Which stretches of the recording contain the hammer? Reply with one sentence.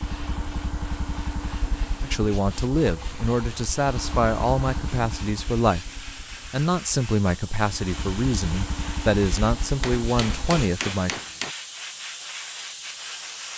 You can hear the hammer from 9.8 to 11.6 s.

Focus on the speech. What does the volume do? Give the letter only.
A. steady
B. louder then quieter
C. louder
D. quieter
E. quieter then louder
A.